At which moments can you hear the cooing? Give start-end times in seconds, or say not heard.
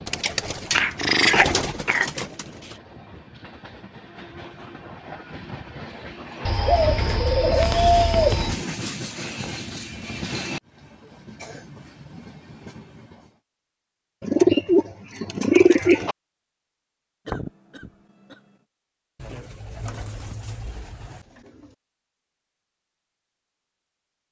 0.1-2.8, 6.5-8.6, 14.2-16.1, 19.1-21.8.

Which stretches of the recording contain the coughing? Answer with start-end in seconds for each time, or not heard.
0.8-2.2, 17.2-18.4.